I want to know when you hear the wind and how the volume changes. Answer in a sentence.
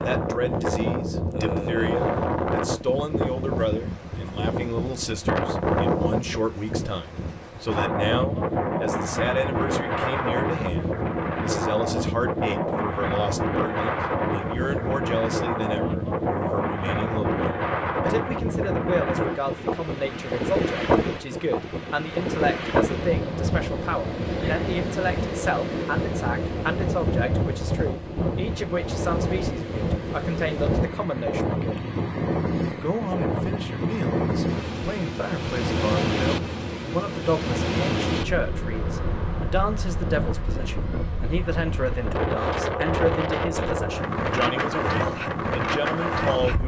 The wind can be heard from 0.0 to 46.6 s, at a steady volume.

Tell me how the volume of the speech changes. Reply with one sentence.
The volume of the speech stays about the same.